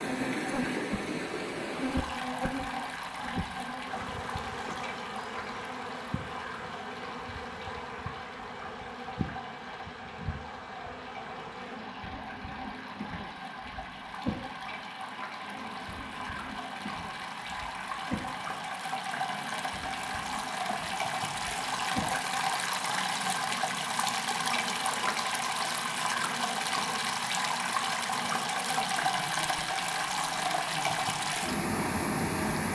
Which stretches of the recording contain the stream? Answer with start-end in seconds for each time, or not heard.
0.0-32.7.